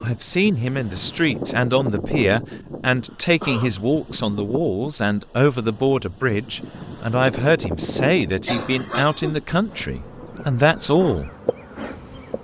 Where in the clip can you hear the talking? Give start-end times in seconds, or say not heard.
0.0-11.3.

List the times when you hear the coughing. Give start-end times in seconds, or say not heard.
3.0-3.8, 8.4-9.3.